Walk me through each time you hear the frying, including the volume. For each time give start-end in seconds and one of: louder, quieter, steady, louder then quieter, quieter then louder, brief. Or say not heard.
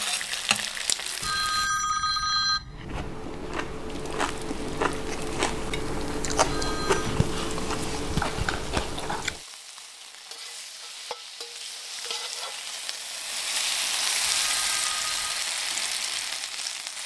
0.0-1.7 brief
3.9-17.0 louder.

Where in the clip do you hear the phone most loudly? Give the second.
2 s.